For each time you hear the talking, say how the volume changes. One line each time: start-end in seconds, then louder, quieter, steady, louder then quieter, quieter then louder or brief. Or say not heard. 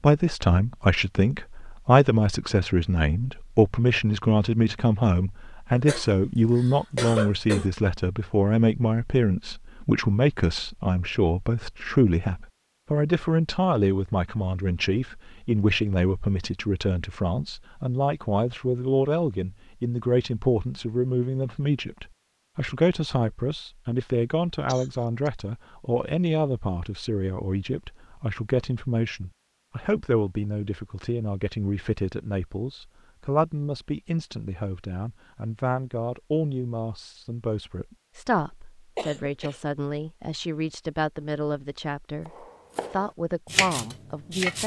0.0-44.6 quieter.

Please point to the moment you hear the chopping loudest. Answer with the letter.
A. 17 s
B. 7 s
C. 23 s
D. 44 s
D.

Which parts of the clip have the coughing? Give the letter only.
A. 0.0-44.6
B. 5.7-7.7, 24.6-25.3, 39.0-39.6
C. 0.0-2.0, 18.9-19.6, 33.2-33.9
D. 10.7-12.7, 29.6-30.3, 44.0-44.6
B.